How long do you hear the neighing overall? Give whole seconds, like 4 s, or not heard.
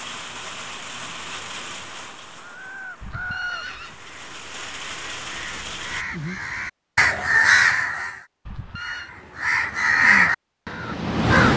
2 s.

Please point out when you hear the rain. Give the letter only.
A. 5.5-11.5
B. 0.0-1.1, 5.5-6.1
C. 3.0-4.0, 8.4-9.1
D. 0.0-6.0
D.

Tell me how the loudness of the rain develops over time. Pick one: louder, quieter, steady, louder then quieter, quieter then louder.
quieter then louder.